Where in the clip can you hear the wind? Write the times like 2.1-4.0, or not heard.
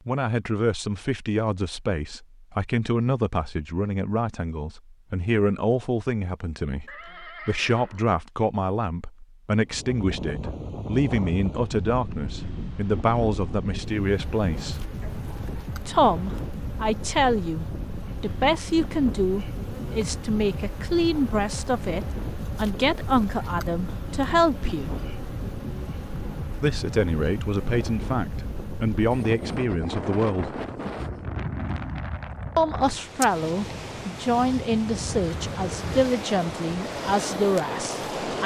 9.7-38.4.